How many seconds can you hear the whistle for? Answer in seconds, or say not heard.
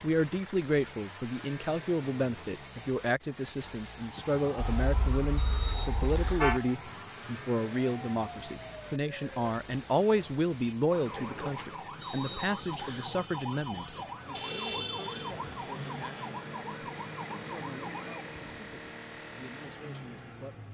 2 s.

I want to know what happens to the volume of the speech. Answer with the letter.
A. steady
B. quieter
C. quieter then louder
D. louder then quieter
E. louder
B.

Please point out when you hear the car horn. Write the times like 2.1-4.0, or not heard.
4.8-6.6, 14.3-15.3.